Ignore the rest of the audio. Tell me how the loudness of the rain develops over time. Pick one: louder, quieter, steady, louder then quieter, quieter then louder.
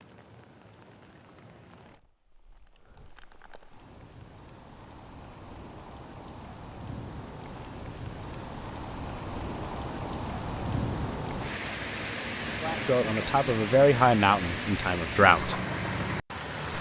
louder.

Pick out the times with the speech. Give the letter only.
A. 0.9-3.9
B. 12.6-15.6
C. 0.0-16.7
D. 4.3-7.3
B.